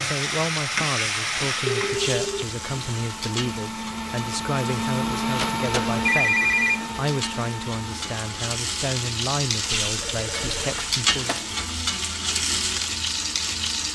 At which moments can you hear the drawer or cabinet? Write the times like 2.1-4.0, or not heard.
not heard.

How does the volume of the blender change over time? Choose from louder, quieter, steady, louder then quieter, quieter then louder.
louder then quieter.